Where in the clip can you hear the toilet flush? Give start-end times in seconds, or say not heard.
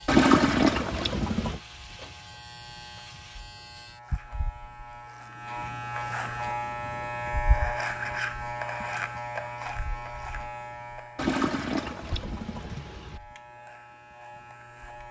0.1-1.6, 11.2-13.2.